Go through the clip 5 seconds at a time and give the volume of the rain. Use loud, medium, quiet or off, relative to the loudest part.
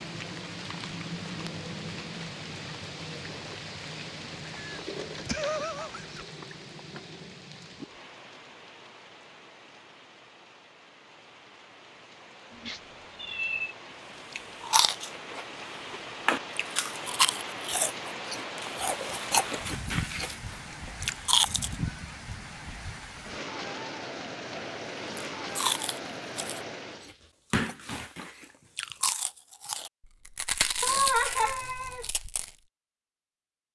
loud, medium, medium, loud, loud, loud, off.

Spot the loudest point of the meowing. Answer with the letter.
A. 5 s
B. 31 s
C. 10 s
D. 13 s
B.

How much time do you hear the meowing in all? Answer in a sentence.
The meowing can be heard for 4 seconds in total.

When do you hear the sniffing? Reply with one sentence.
The sniffing can't be heard in this clip.